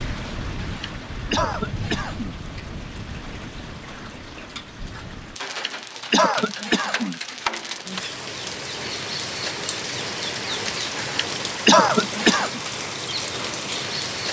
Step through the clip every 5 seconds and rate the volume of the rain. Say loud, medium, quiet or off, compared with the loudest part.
medium, loud, loud.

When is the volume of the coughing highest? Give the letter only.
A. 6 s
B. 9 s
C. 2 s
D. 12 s
D.